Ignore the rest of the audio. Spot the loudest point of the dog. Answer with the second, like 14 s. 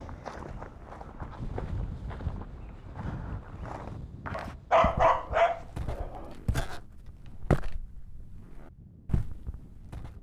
5 s.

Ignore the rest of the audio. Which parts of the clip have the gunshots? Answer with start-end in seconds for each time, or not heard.
not heard.